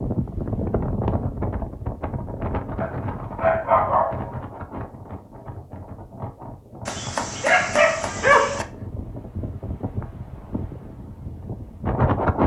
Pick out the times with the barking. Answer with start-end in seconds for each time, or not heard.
2.8-4.3, 6.8-8.7.